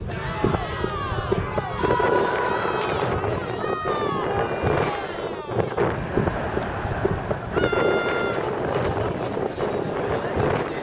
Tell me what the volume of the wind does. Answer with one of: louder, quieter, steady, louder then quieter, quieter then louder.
steady.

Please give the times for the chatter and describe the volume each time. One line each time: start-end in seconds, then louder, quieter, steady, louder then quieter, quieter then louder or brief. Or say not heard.
0.1-10.7 steady.